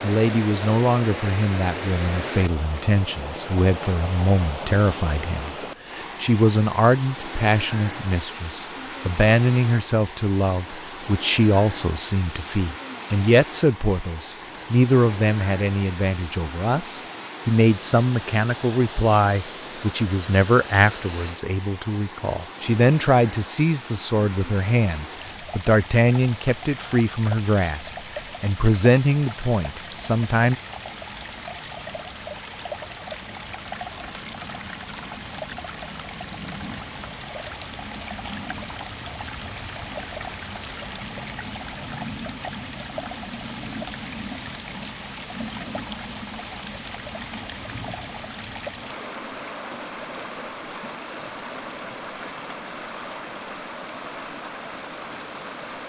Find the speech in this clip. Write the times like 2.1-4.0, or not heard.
0.0-30.6.